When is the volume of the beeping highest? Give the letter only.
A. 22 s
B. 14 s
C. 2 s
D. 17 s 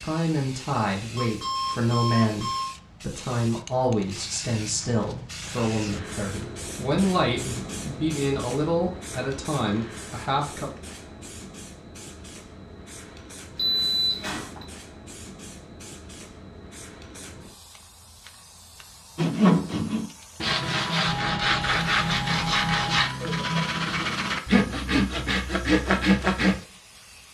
B.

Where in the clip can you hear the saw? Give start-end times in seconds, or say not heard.
19.1-26.6.